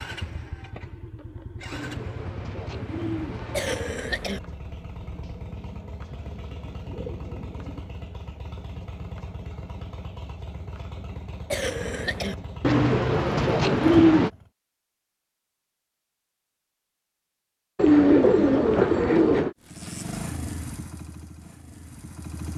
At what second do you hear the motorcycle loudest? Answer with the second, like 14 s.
20 s.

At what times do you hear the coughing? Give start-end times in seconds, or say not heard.
3.5-4.4, 11.5-12.3.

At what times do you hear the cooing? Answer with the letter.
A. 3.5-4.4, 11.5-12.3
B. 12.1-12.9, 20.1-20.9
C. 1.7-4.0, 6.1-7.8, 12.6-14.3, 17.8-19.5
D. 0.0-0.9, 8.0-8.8
C.